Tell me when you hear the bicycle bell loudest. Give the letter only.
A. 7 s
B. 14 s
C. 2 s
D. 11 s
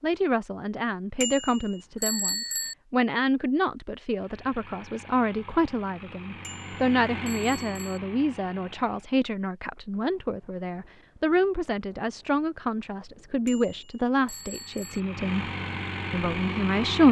C.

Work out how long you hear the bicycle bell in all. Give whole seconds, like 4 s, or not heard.
5 s.